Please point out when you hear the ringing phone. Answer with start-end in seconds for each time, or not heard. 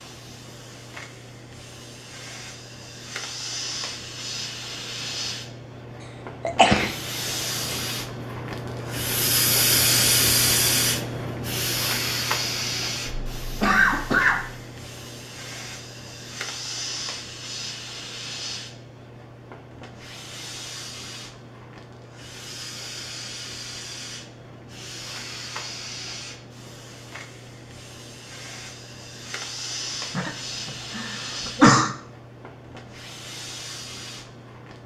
not heard.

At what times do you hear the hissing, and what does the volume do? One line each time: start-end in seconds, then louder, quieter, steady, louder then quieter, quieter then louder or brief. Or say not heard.
0.0-34.8 louder then quieter.